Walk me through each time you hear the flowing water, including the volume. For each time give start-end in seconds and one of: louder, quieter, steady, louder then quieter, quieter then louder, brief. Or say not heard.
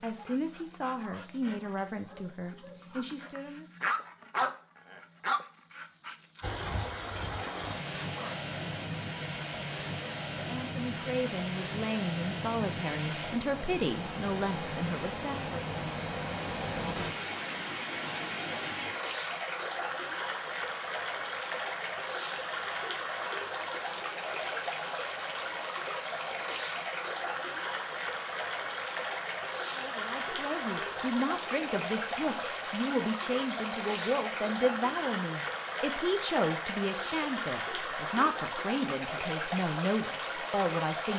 6.4-41.1 steady.